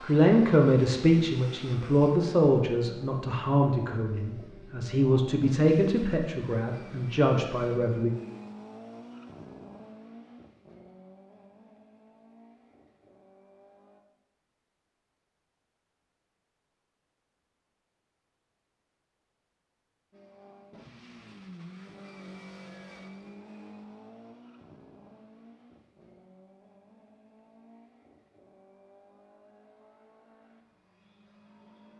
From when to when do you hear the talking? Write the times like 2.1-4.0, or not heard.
0.0-8.1.